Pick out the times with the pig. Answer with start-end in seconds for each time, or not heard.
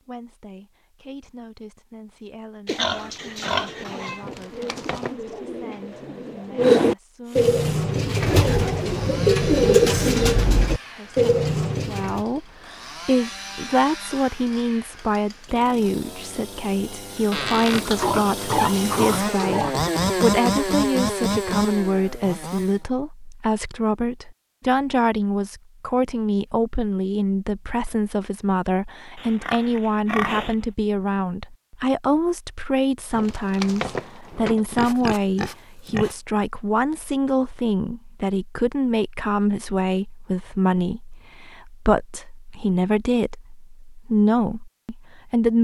2.6-4.2, 17.7-19.8, 29.1-30.6, 34.7-36.1.